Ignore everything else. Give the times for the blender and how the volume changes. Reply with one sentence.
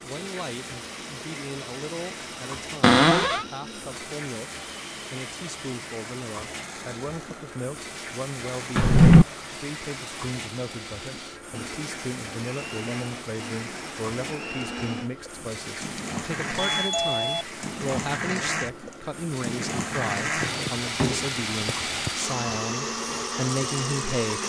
You can hear the blender from 0.1 to 24.4 s, getting louder.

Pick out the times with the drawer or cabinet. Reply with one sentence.
You can hear the drawer or cabinet from 2.8 to 3.5 s, from 8.8 to 9.2 s and from 20.4 to 22.1 s.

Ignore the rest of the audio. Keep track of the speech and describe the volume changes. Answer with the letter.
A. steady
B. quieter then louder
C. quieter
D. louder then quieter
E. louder
E.